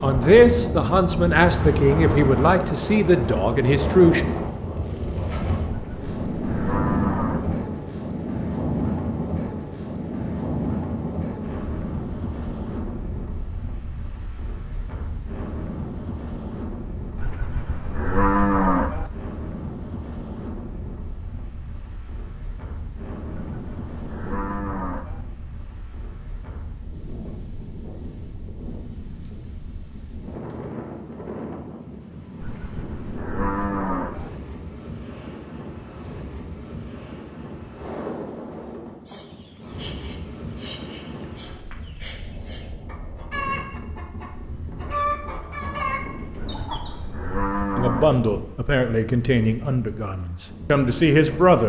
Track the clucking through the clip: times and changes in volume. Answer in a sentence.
The clucking can be heard from 39.0 to 47.0 s, getting louder.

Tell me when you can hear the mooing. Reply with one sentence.
The mooing can be heard from 5.7 to 7.6 s, from 17.1 to 19.1 s, from 23.3 to 25.2 s, from 32.4 to 34.3 s and from 46.4 to 48.2 s.